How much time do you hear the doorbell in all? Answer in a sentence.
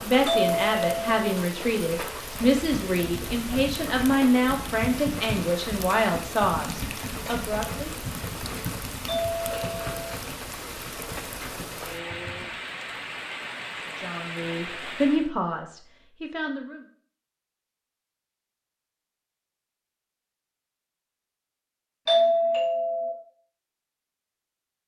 You can hear the doorbell for 3 seconds altogether.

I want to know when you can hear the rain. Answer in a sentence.
You can hear the rain from 0.0 to 15.3 s.